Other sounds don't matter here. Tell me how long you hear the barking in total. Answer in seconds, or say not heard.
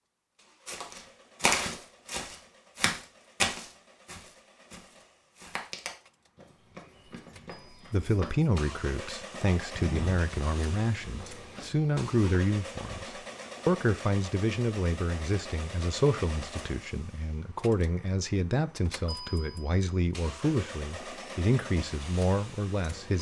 not heard.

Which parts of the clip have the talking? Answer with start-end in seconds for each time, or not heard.
7.9-23.1.